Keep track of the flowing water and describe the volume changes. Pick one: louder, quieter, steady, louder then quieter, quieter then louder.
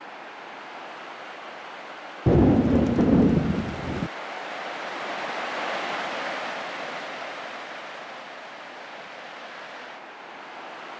louder then quieter.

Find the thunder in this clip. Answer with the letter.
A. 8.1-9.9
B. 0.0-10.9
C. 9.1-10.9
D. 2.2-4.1
D.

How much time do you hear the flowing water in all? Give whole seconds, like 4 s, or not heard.
11 s.